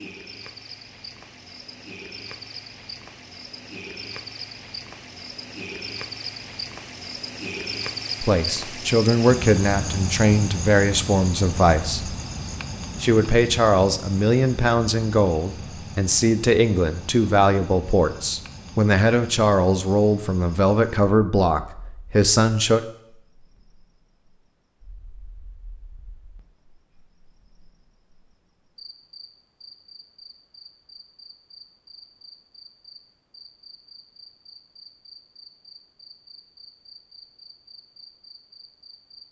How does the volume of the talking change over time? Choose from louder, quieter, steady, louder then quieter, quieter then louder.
steady.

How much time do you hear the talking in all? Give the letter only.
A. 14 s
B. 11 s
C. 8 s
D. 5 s
A.